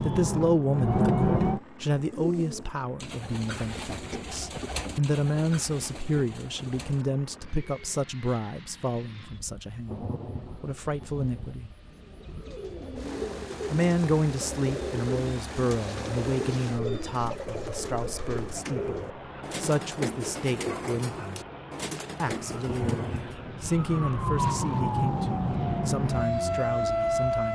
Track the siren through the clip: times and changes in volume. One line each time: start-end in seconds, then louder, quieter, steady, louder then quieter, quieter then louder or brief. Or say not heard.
0.0-1.6 brief
22.4-27.5 louder.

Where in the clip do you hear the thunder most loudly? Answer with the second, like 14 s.
23 s.